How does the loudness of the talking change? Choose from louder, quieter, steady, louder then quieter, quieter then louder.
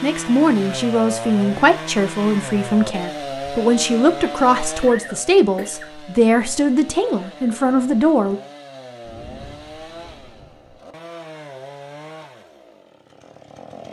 steady.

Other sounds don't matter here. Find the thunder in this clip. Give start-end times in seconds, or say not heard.
9.1-10.8.